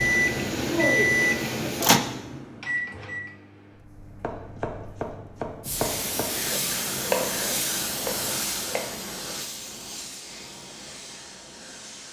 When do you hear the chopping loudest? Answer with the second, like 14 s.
7 s.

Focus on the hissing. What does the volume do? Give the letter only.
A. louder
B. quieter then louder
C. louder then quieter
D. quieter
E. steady
D.